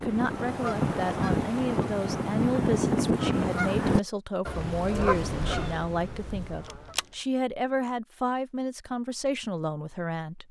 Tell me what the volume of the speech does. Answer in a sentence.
The loudness of the speech stays about the same.